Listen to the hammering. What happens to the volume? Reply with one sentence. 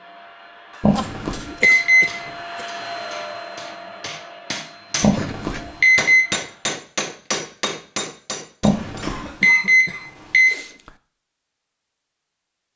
The volume of the hammering goes up.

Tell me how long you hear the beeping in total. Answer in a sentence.
You can hear the beeping for 5 seconds altogether.